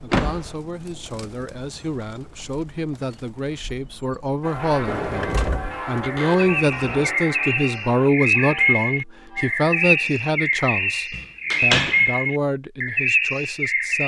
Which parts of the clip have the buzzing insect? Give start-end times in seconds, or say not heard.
not heard.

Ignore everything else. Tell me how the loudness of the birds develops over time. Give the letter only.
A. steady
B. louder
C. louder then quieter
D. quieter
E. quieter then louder
B.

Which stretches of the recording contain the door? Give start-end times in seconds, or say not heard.
0.1-0.6, 4.8-7.2, 11.2-12.0.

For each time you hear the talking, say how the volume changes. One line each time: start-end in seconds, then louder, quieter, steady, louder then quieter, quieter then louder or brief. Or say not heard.
0.0-14.0 louder then quieter.